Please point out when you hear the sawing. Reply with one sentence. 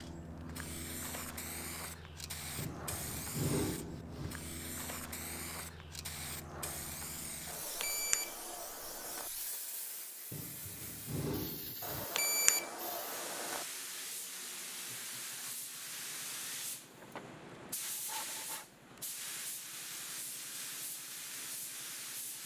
You can hear the sawing from 2.5 to 4.3 s, from 10.3 to 12.1 s and from 16.9 to 18.6 s.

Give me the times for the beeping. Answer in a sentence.
You can hear the beeping from 7.5 to 9.3 s and from 11.8 to 13.7 s.